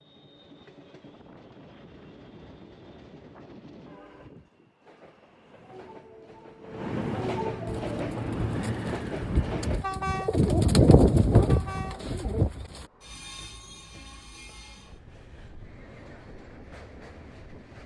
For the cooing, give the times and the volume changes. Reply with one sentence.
The cooing can be heard from 7.7 to 12.8 s, getting louder then quieter.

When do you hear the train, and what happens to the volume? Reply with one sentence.
You can hear the train from 0.0 to 17.8 s, getting louder then quieter.